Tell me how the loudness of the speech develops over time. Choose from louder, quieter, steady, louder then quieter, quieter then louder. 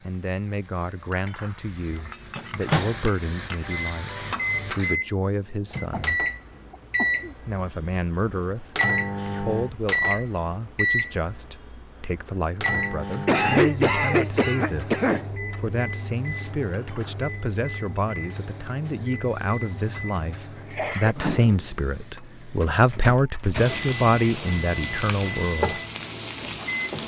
louder.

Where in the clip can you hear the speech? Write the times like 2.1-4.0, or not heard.
0.0-6.2, 7.5-25.8.